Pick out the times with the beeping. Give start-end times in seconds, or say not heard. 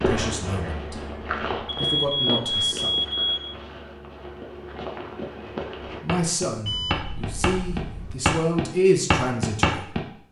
1.6-3.5, 6.7-8.2.